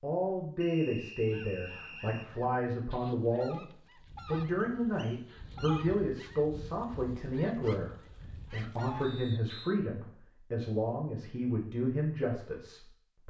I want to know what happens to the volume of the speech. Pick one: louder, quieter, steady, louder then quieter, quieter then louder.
steady.